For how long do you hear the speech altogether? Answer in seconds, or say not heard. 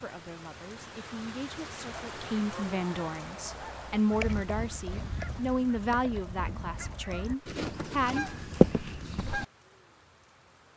8 s.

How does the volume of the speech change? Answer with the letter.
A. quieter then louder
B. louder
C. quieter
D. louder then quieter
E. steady
D.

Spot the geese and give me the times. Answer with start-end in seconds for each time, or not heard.
1.9-9.4.